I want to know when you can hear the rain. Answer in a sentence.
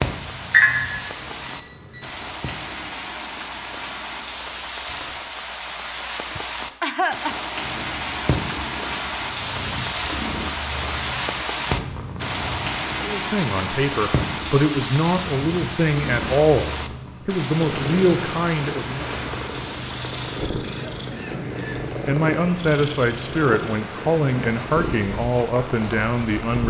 You can hear the rain from 0.0 to 26.6 s.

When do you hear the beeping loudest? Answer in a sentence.
The loudest moment of the beeping is at 1 second.